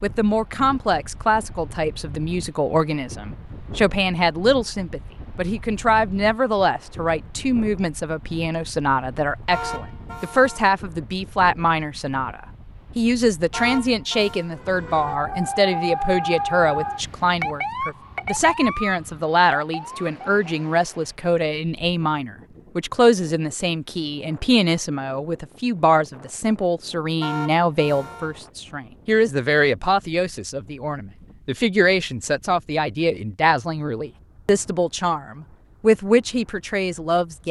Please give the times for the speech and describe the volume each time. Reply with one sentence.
You can hear the speech from 0.0 to 37.4 s, at a steady volume.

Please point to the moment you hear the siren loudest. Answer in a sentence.
The volume of the siren peaks at 16 seconds.